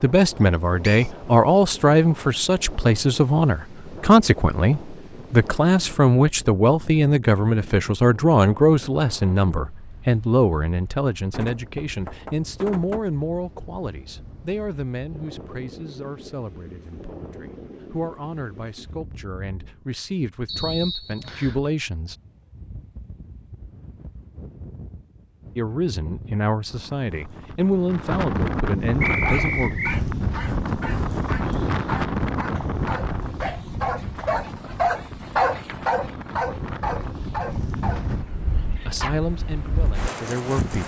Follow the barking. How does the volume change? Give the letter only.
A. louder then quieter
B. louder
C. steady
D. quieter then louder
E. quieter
A.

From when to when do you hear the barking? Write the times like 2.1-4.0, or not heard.
29.2-39.2.